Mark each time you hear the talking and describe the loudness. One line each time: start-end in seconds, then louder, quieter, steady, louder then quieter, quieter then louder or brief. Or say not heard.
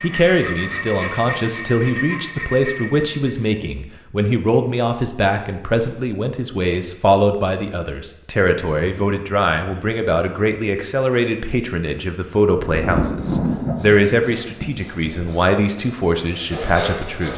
0.0-17.3 steady.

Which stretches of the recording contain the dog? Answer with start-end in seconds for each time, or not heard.
not heard.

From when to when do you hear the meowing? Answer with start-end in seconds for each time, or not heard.
not heard.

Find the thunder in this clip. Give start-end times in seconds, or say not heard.
12.6-15.3.